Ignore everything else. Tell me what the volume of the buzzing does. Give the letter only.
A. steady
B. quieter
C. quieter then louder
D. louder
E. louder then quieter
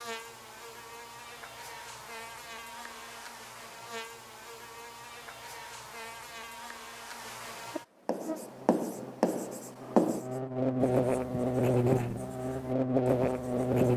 D.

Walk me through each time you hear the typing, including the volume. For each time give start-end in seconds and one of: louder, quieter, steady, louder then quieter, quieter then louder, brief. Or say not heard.
not heard.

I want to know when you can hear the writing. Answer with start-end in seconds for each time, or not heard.
8.1-13.9.